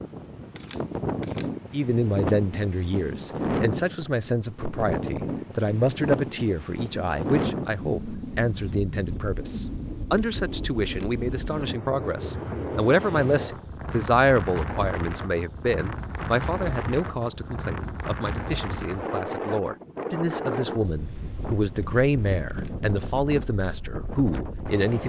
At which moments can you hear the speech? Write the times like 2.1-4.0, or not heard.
1.7-25.0.